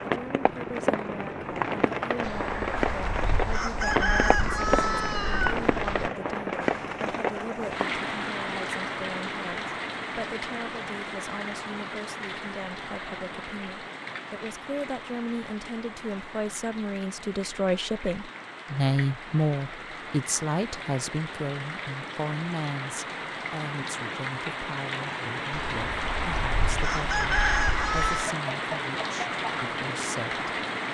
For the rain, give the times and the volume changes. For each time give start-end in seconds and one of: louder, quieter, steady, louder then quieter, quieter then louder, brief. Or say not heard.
0.0-30.8 quieter then louder.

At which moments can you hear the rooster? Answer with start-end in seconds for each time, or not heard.
2.2-6.1, 25.5-28.3.